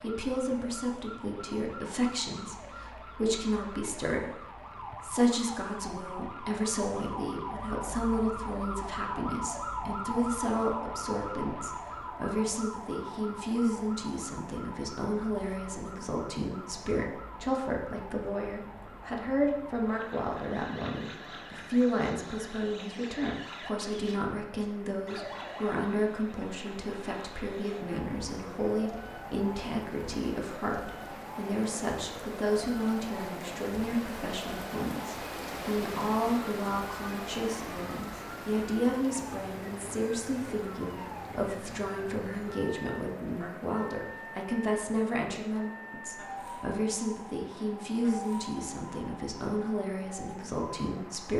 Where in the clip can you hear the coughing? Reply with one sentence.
The coughing can't be heard in this clip.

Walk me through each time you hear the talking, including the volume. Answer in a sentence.
You can hear the talking from 0.0 to 51.3 s, at a steady volume.